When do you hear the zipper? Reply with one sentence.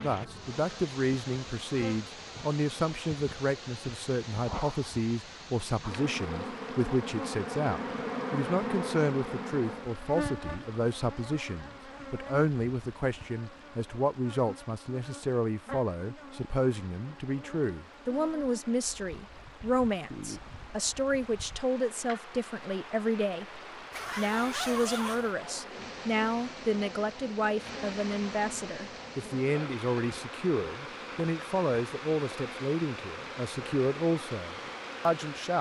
You can hear the zipper from 23.9 to 25.3 s.